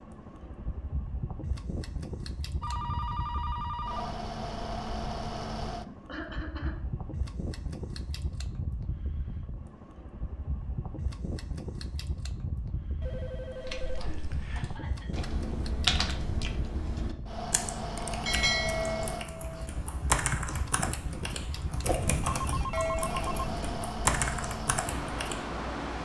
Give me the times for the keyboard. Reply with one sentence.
The keyboard can be heard from 13.6 to 25.5 s.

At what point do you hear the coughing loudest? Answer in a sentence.
The volume of the coughing peaks at 6 seconds.